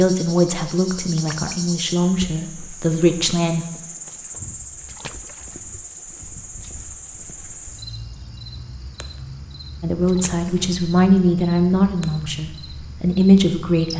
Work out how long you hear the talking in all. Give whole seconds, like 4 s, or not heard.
8 s.